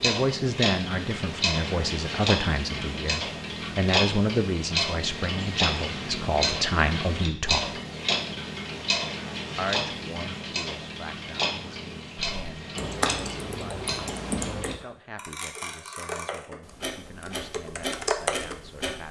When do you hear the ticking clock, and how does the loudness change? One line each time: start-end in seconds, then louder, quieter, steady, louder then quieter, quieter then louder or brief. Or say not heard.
0.0-19.0 quieter.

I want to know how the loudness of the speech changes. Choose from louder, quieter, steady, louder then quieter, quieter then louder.
quieter.